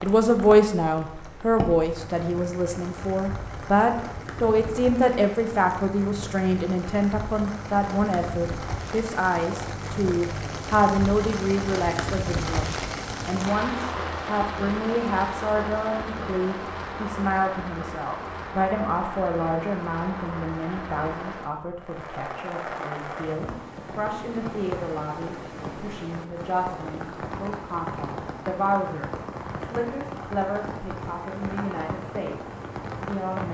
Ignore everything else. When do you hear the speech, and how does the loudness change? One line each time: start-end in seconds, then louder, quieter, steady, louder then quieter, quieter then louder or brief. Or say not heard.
0.0-33.4 quieter.